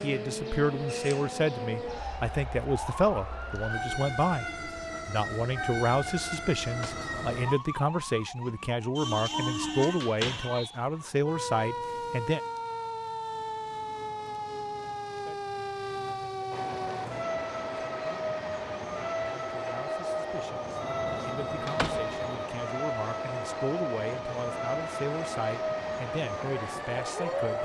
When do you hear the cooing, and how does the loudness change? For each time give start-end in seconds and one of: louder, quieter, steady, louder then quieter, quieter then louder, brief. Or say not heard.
not heard.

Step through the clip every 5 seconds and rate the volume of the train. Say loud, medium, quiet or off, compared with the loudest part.
off, off, off, loud, loud, loud.